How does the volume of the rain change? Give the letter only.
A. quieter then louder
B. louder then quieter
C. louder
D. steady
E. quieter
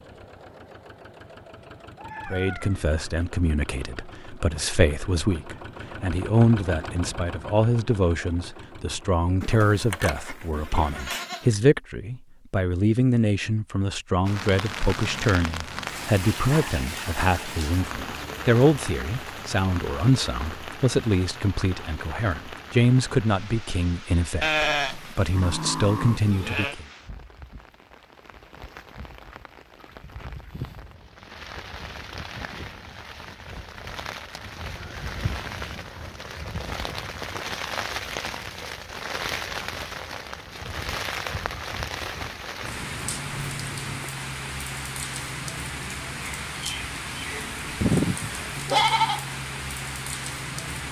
A.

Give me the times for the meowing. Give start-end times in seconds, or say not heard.
1.6-3.0, 42.6-44.1.